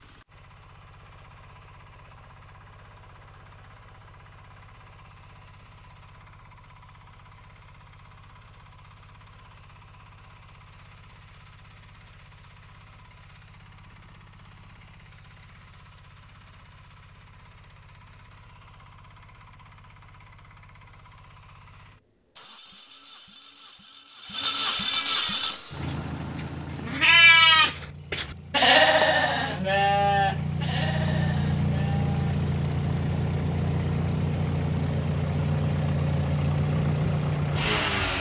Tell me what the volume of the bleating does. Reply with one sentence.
The loudness of the bleating goes up, then down.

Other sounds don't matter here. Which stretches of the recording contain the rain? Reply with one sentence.
You can't hear the rain here.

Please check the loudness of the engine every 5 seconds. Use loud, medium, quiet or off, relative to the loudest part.
quiet, quiet, quiet, quiet, medium, medium, loud, loud.